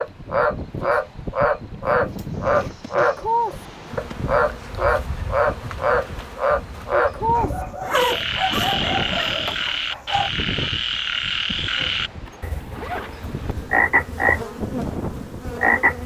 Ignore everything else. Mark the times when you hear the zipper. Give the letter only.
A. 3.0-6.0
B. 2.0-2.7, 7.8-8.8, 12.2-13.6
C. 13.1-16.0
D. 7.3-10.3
B.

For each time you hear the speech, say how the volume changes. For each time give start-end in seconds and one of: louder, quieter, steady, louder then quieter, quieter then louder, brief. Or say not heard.
not heard.